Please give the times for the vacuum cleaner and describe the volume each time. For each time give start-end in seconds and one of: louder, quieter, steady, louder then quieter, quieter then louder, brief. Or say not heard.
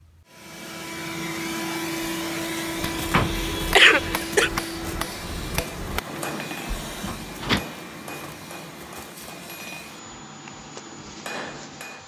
0.0-12.0 quieter.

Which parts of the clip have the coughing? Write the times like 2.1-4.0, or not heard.
3.8-4.5.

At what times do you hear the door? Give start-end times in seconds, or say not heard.
2.8-3.4, 6.8-7.7.